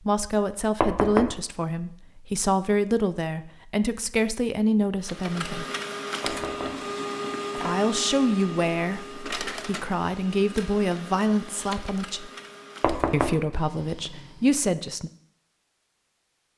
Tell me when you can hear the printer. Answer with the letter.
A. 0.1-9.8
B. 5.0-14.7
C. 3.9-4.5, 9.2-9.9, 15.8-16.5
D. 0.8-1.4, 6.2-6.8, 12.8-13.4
B.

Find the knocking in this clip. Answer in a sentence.
You can hear the knocking from 0.8 to 1.4 s, from 6.2 to 6.8 s and from 12.8 to 13.4 s.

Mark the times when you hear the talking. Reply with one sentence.
The talking can be heard from 0.1 to 5.7 s, from 7.5 to 12.3 s and from 13.1 to 15.1 s.